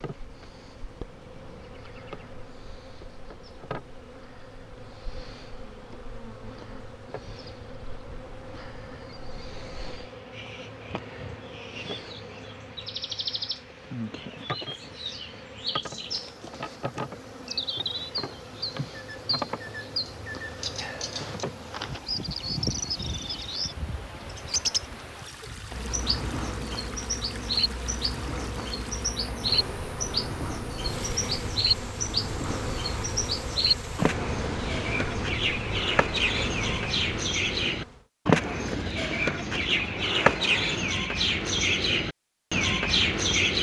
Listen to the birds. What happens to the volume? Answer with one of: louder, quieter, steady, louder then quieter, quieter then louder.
louder.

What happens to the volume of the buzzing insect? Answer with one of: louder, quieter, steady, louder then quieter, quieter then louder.
louder.